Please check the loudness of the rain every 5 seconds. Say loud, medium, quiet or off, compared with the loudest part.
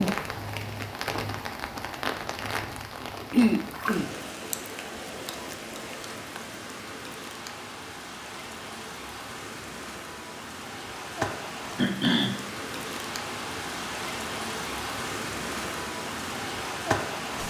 loud, medium, loud, loud.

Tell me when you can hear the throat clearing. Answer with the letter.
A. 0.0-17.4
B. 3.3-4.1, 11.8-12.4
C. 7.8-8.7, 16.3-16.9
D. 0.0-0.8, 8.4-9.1
B.